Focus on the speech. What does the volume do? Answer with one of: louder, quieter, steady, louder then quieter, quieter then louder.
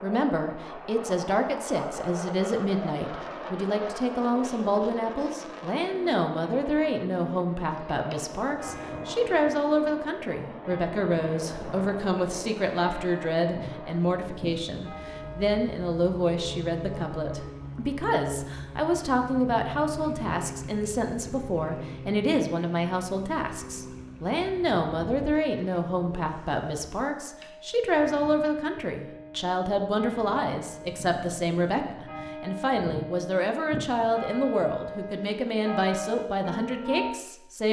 steady.